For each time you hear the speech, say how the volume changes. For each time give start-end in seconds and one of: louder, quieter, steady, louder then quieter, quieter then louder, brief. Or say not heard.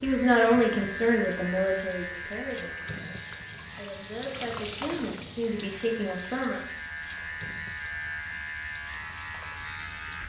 0.0-6.6 quieter then louder.